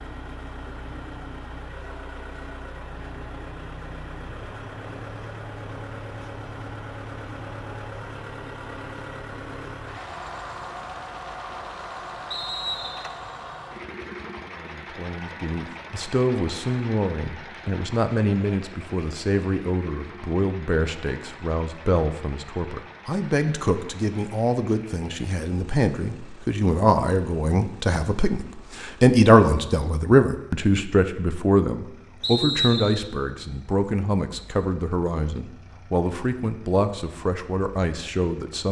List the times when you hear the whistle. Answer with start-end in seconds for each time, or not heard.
12.3-13.2, 32.2-33.1.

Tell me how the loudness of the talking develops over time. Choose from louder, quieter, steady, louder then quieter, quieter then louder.
louder then quieter.